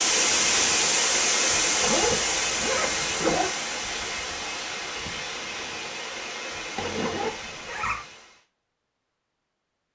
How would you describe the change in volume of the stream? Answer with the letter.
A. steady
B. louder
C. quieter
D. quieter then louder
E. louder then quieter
C.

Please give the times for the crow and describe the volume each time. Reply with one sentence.
You can't hear the crow here.